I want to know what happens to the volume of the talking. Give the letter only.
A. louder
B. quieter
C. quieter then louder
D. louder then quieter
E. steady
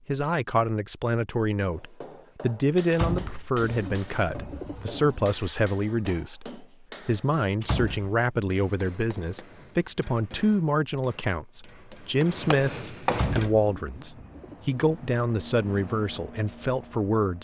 E.